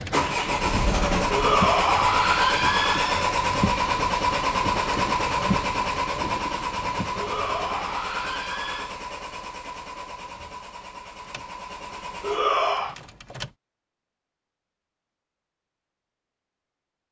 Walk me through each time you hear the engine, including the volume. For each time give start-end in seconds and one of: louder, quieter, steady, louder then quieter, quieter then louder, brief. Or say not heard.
0.0-13.6 quieter.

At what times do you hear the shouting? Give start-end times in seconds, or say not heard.
1.3-3.3, 7.2-8.9, 12.2-12.9.